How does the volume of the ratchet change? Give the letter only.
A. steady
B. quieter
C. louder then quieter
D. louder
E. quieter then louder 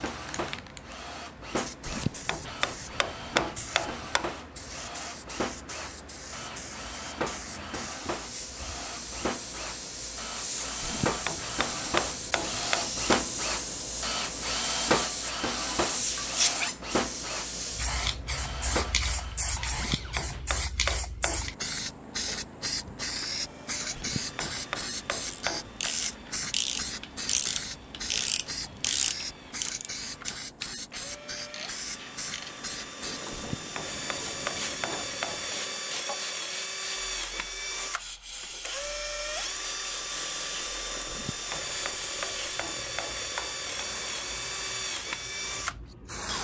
B.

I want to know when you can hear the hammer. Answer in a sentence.
You can hear the hammer from 1.9 to 4.2 s, from 10.8 to 13.3 s, from 19.7 to 21.5 s, from 23.9 to 25.9 s, from 33.3 to 35.5 s and from 41.0 to 43.6 s.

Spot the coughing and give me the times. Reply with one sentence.
The coughing can't be heard in this clip.